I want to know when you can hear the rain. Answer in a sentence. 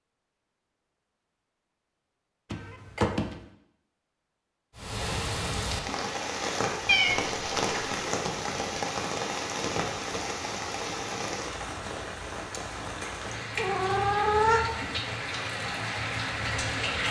The rain can be heard from 4.8 to 17.0 s.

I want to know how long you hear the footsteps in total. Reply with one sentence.
You can't hear the footsteps here.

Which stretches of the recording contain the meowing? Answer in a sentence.
The meowing can be heard from 2.5 to 3.4 s, from 6.8 to 8.0 s and from 13.6 to 14.7 s.